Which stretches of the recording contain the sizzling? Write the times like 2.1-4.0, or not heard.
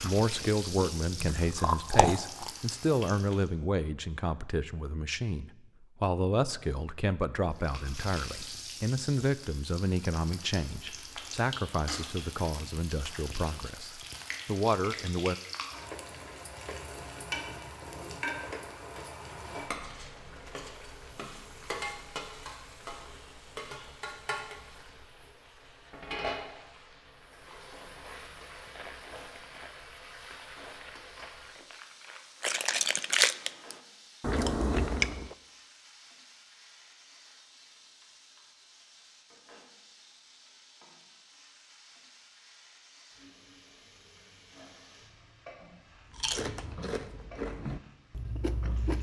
0.0-3.5, 7.5-48.9.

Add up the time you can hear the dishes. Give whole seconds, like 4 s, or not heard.
not heard.